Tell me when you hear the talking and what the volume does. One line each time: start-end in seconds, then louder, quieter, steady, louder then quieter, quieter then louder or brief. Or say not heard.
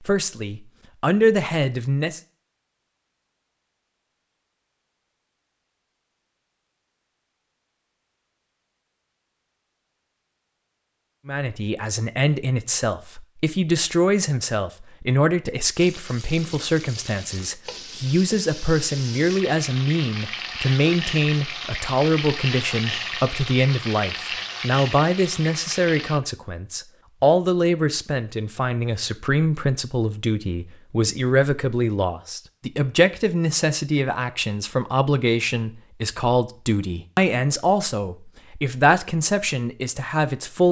0.0-2.2 brief
11.2-40.6 steady.